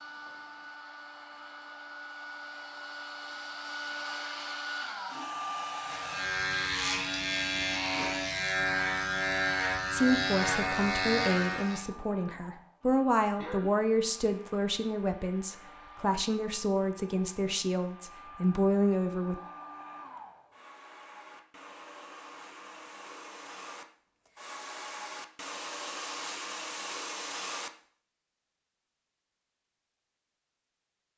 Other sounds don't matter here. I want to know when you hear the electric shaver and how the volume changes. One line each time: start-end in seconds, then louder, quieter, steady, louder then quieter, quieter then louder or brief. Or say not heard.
5.8-11.8 steady.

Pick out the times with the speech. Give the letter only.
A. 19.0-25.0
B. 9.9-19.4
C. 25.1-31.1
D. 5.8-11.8
B.